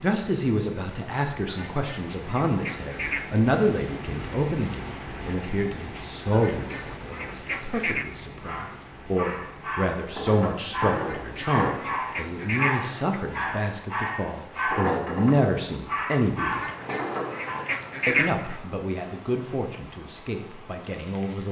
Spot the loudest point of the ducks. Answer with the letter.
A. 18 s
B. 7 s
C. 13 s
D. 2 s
A.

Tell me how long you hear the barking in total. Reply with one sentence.
The barking can be heard for 9 seconds in total.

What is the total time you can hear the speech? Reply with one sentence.
The speech can be heard for 20 seconds in total.